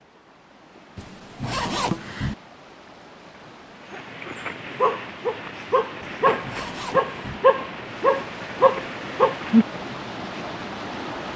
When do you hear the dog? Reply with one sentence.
The dog can be heard from 3.9 to 9.8 s.